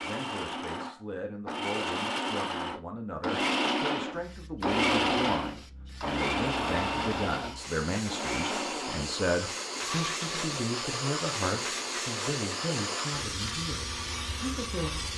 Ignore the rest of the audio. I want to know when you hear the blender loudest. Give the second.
5 s.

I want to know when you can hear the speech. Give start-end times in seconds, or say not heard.
0.0-15.1.